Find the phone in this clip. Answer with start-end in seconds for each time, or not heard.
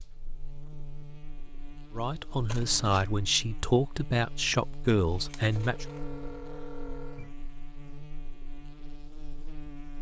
5.5-7.3.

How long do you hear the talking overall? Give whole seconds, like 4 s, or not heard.
4 s.